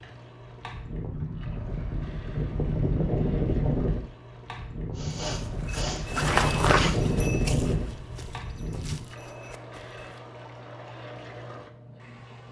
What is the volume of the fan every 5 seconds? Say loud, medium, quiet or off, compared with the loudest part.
loud, loud, off.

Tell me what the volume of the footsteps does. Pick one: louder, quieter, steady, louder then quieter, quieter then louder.
quieter.